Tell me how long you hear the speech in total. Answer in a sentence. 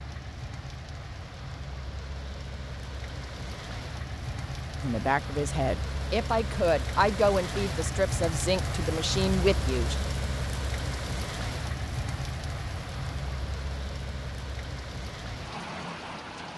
The speech can be heard for 5 seconds in total.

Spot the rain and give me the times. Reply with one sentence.
The rain can be heard from 0.0 to 16.5 s.